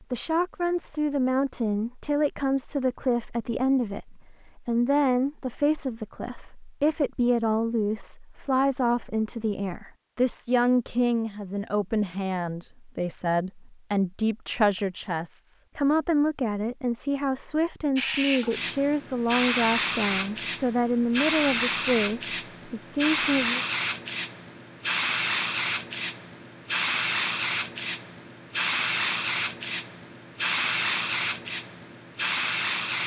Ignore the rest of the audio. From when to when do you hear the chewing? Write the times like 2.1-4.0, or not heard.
not heard.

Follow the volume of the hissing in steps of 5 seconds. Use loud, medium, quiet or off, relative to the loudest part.
off, off, off, loud, loud, loud, loud.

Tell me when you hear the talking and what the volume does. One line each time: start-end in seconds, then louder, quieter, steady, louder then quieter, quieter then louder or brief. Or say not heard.
0.1-23.6 steady.